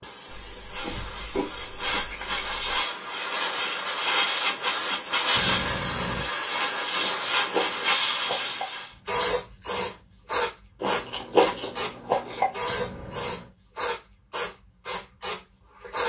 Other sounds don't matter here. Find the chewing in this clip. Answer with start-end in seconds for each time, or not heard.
0.2-2.9, 7.0-8.7, 10.8-12.5.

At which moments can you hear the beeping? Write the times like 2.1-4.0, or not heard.
5.3-6.2, 12.7-13.4.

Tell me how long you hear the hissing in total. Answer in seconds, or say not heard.
16 s.